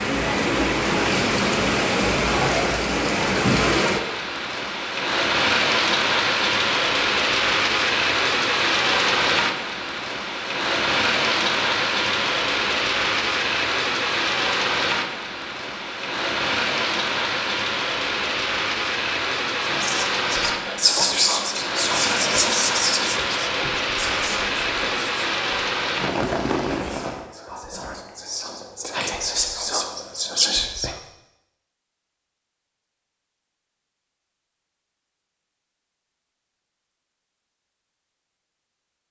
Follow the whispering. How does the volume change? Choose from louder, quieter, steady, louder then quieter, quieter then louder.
quieter then louder.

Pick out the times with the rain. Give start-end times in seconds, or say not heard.
0.0-27.2.